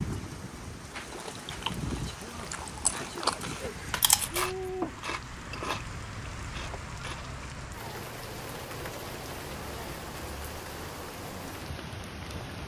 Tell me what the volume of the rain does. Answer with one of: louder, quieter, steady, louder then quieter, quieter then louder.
steady.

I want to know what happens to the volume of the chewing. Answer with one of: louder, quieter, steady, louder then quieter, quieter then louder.
louder then quieter.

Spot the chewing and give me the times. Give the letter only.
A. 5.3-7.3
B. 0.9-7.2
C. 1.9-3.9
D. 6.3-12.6
B.